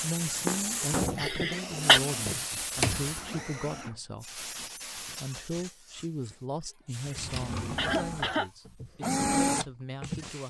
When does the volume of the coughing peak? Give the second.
2 s.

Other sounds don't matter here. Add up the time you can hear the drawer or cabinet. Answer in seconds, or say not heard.
2 s.